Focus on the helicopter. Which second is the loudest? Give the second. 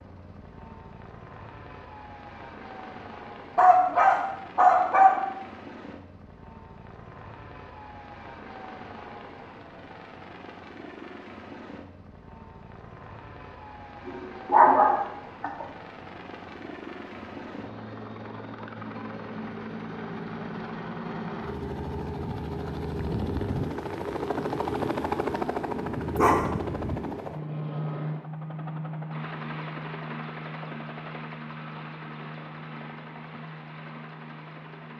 25 s.